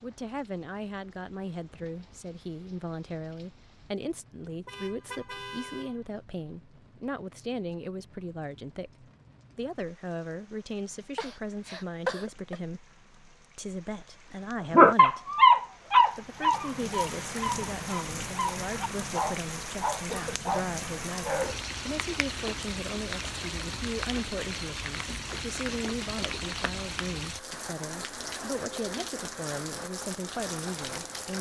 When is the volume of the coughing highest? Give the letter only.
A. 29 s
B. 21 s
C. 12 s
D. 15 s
C.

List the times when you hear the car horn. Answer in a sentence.
The car horn can be heard from 4.7 to 6.0 s.